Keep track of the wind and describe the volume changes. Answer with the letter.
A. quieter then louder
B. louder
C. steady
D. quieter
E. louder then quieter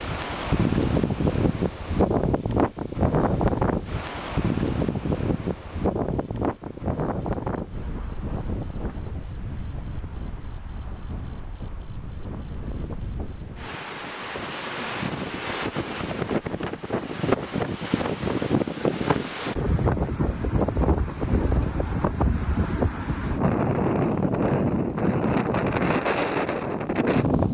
A.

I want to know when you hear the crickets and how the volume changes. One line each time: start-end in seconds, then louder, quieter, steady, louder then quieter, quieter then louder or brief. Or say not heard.
0.0-27.4 louder then quieter.